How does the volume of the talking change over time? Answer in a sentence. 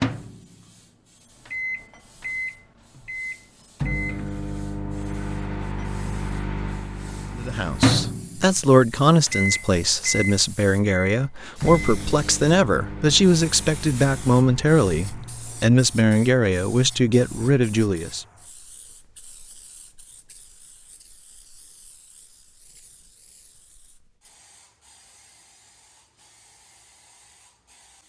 The loudness of the talking stays about the same.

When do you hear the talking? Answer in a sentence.
The talking can be heard from 7.3 to 18.2 s.